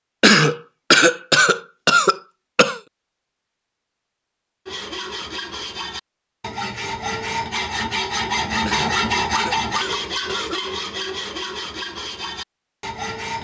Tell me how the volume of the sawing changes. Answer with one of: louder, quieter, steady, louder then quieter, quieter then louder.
louder then quieter.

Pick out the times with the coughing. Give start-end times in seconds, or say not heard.
0.2-2.8, 8.7-10.6.